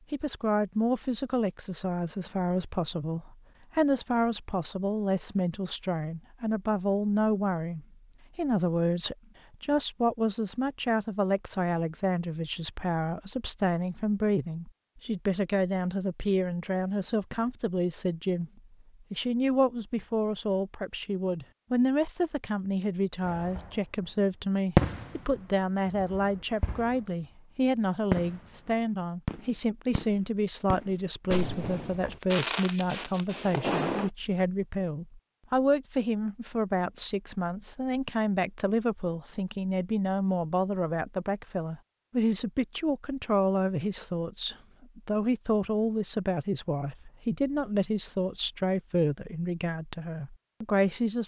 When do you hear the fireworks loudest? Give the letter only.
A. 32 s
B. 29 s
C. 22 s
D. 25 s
D.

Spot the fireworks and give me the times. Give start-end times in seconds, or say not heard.
23.2-23.8, 24.8-27.1, 28.1-34.1.